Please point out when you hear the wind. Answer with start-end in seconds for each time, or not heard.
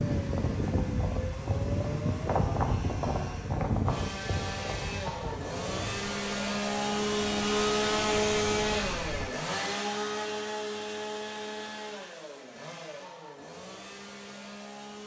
0.0-9.3.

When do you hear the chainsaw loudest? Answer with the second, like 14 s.
8 s.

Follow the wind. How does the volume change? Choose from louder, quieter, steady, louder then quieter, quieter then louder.
quieter.